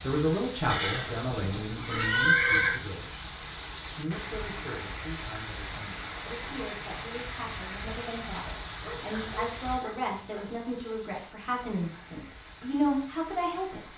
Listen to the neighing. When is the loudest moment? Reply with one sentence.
The loudest moment of the neighing is at 2 seconds.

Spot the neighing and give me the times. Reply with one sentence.
You can hear the neighing from 0.7 to 2.8 s.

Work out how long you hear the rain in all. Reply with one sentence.
You can hear the rain for 14 seconds altogether.